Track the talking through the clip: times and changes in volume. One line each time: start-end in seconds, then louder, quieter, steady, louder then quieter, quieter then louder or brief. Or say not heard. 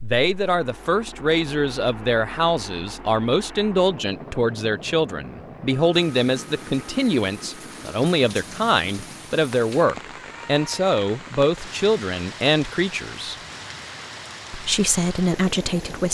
0.0-13.3 steady
14.5-16.1 brief.